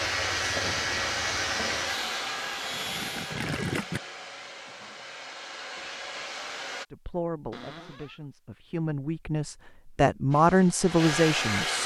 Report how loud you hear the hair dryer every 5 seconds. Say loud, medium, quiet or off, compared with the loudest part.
loud, medium, loud.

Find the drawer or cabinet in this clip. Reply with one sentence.
The drawer or cabinet can be heard from 7.5 to 8.2 s.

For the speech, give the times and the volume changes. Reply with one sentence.
You can hear the speech from 6.9 to 11.8 s, getting louder.